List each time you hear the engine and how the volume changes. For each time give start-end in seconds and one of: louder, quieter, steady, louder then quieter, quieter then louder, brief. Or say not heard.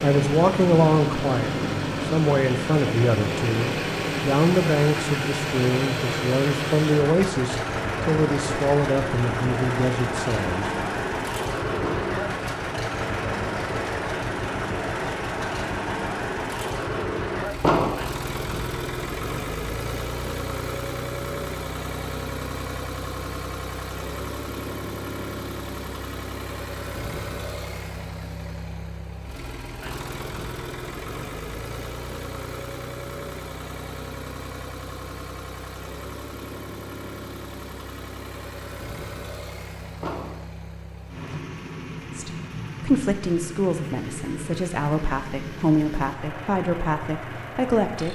0.0-48.1 quieter.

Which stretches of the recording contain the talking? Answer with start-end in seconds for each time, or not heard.
0.0-10.7, 42.1-48.1.